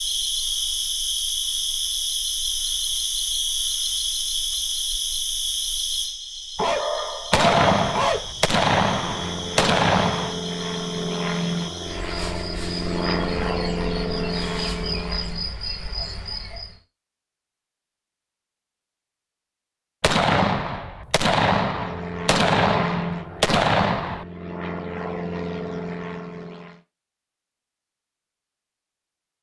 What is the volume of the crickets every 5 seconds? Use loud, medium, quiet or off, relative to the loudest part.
loud, medium, medium, medium, off, off.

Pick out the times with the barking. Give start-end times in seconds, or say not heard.
6.5-8.2.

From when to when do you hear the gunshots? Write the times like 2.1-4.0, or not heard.
7.3-10.4, 20.0-24.2.